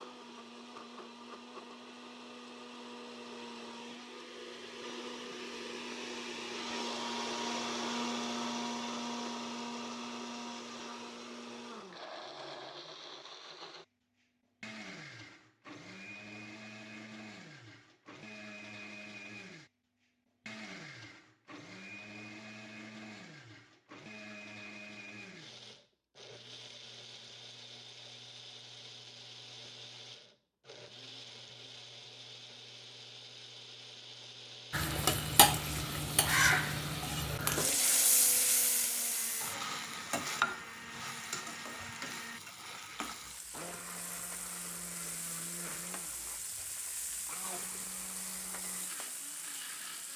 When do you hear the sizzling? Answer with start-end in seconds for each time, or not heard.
34.7-50.1.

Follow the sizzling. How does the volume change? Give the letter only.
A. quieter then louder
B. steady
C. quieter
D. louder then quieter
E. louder
C.